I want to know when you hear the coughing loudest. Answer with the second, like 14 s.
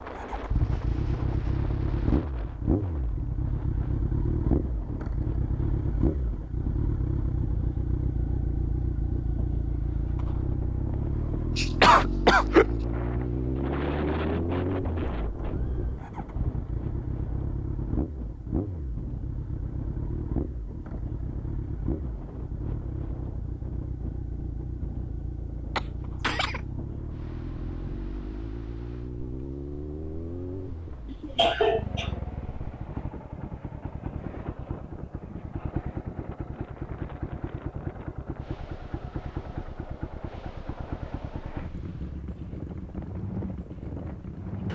12 s.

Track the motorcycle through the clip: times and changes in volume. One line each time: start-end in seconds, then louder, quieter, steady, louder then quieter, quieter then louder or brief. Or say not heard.
0.0-44.7 quieter.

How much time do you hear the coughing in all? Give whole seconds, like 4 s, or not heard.
3 s.